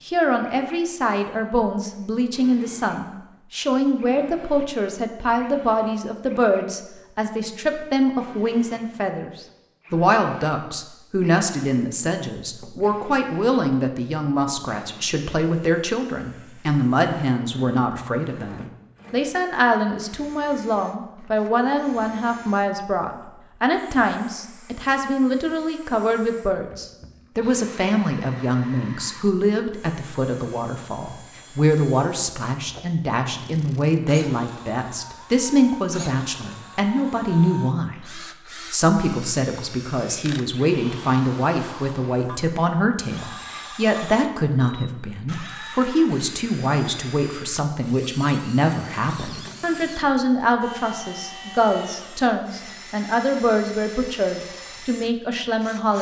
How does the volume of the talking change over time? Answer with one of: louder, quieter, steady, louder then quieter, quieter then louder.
steady.